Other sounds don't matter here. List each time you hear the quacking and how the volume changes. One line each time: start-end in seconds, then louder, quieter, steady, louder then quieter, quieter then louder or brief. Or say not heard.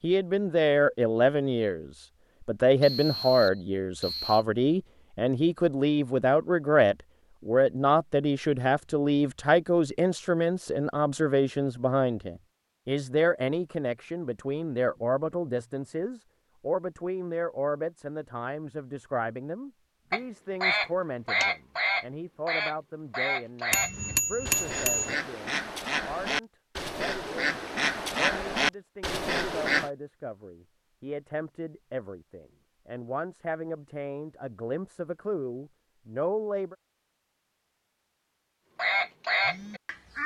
20.1-29.9 quieter then louder
38.8-40.2 brief.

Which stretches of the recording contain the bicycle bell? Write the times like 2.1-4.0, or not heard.
23.7-25.1.